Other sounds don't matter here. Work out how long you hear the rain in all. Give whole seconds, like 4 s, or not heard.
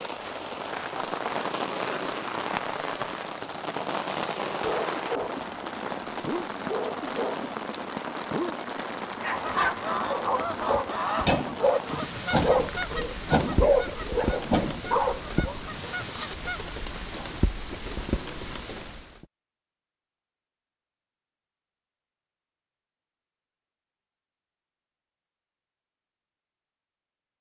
19 s.